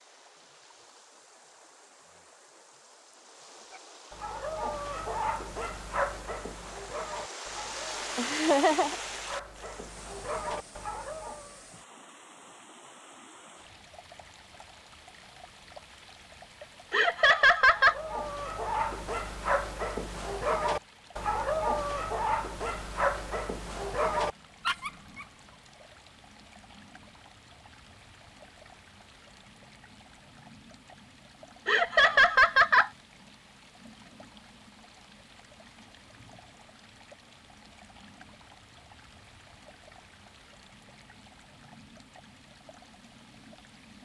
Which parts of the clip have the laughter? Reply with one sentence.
You can hear the laughter from 8.2 to 8.9 s, from 16.9 to 17.9 s and from 31.6 to 32.9 s.